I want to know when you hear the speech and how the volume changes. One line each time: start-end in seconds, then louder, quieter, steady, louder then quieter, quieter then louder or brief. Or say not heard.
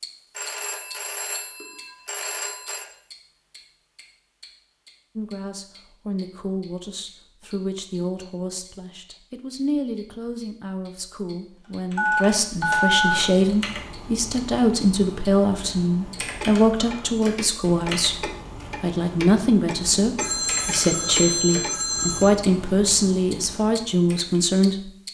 5.2-24.9 louder.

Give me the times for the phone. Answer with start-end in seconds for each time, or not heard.
0.3-2.9, 11.9-13.2, 20.1-22.3.